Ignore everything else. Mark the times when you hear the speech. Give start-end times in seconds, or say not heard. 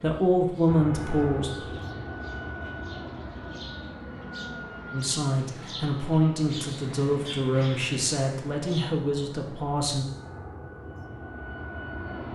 0.0-1.5, 4.9-10.1.